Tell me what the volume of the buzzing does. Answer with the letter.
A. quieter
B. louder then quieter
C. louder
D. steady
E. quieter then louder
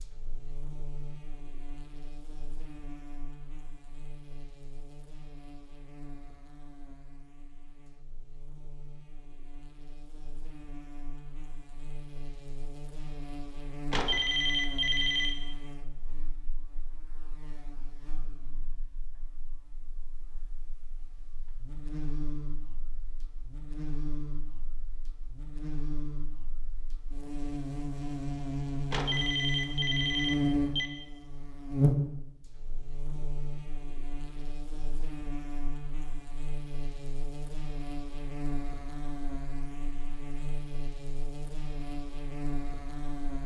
B.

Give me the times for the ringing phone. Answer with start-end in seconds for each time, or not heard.
13.9-15.3, 28.9-30.9.